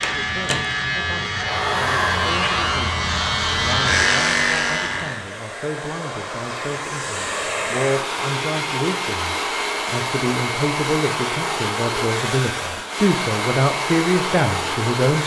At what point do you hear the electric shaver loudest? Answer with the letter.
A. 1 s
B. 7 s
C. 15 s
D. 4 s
D.